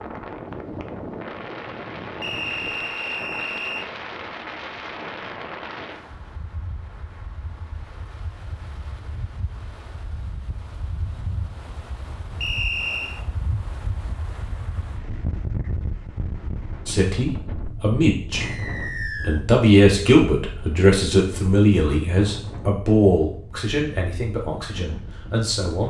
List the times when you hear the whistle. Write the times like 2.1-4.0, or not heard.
2.2-3.9, 12.4-13.2, 18.4-19.4.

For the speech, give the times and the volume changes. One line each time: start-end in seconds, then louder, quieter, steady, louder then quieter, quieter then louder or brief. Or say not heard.
16.9-18.4 brief
19.2-25.8 quieter.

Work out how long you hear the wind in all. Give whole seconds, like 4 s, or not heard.
26 s.